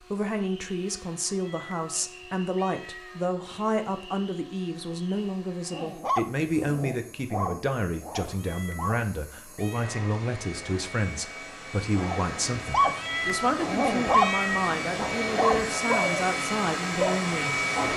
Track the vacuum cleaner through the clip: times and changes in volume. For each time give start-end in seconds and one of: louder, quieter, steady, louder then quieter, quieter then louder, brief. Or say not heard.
0.0-17.9 louder.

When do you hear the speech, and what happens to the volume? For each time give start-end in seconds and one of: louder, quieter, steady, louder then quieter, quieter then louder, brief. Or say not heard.
0.0-17.6 steady.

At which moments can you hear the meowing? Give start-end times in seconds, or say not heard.
1.2-3.2, 8.2-10.0, 12.8-14.8.